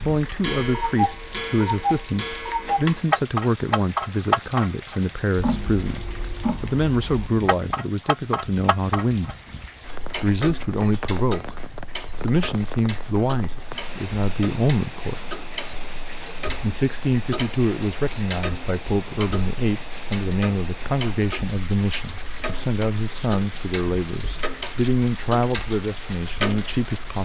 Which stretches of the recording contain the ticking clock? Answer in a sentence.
You can hear the ticking clock from 0.1 to 27.2 s.